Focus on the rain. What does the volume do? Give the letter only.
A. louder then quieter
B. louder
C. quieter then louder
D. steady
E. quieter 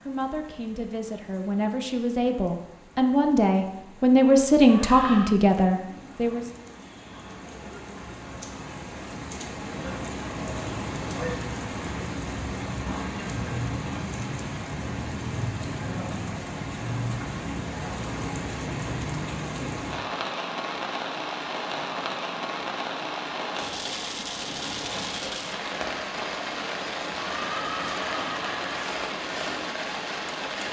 B.